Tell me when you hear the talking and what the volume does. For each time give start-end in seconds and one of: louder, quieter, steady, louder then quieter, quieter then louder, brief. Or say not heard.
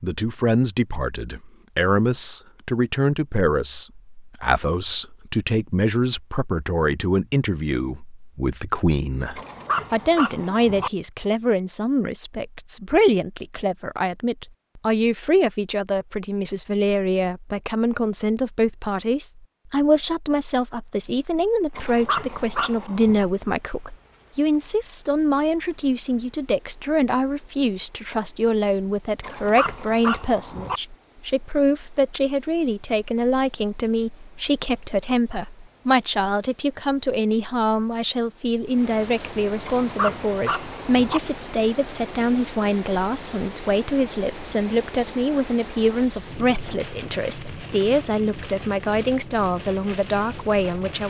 0.0-51.0 steady.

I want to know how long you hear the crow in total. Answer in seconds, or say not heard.
not heard.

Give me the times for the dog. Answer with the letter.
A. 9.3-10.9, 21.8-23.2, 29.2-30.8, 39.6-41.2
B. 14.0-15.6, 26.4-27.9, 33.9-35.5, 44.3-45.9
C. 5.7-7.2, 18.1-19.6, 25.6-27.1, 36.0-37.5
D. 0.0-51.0
A.